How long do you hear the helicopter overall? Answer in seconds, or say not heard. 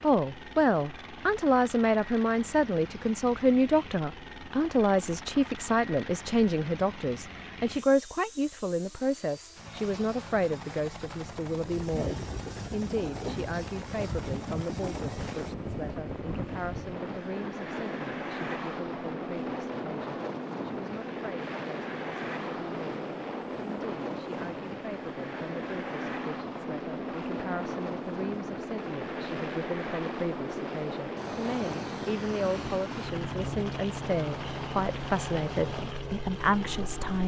37 s.